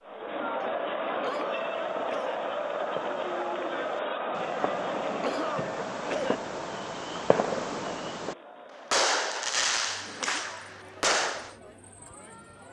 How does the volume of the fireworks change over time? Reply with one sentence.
The volume of the fireworks goes up.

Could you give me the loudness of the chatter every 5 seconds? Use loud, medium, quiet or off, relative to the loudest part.
loud, medium, quiet.